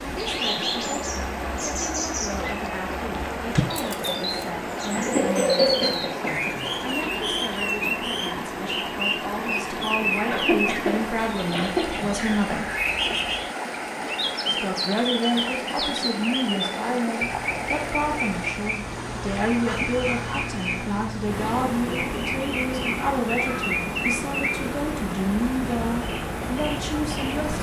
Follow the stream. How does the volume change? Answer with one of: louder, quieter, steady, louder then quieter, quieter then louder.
steady.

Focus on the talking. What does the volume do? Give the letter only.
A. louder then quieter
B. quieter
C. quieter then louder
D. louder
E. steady
D.